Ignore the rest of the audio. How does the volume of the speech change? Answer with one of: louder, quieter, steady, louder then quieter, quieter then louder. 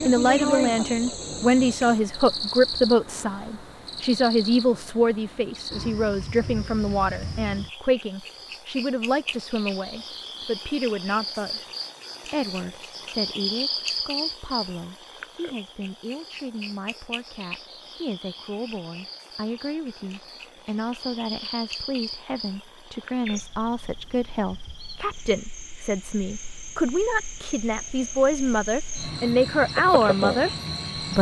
quieter then louder.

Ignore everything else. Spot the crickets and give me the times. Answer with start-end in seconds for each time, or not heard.
0.0-31.1.